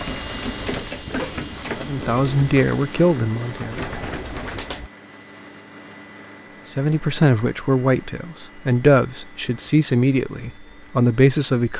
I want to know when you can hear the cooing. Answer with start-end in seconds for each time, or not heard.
0.0-4.9.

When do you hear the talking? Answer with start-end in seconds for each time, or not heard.
1.8-3.8, 6.7-11.7.